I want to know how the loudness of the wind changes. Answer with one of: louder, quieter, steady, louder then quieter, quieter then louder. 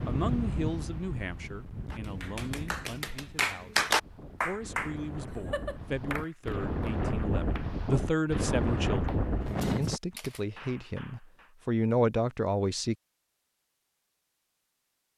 quieter then louder.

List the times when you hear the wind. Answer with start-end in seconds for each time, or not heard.
0.0-10.0.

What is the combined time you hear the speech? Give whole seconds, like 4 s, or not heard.
13 s.